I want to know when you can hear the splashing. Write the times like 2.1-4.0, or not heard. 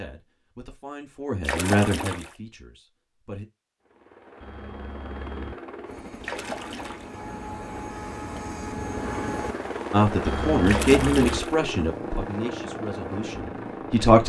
1.4-2.4, 6.2-7.2, 10.7-11.6.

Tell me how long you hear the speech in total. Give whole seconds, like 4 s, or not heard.
8 s.